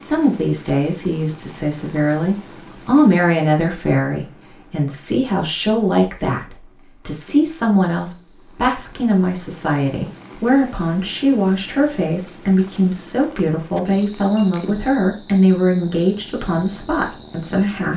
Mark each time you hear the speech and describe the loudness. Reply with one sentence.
You can hear the speech from 0.0 to 17.9 s, at a steady volume.